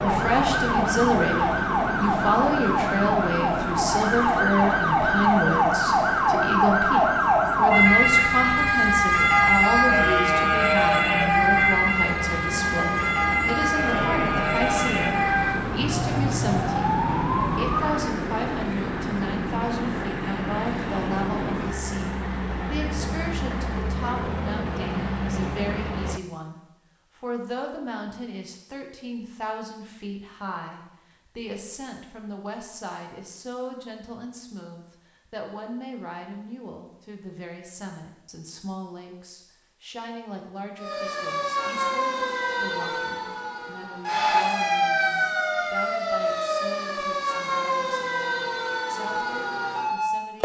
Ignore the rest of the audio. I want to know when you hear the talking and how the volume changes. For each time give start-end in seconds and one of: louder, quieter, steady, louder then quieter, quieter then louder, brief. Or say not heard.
0.0-50.3 quieter.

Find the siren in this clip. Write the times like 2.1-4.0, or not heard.
0.0-18.1, 40.8-50.3.